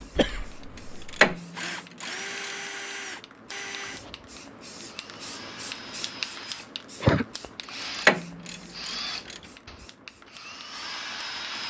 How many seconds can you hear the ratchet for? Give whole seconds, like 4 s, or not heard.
4 s.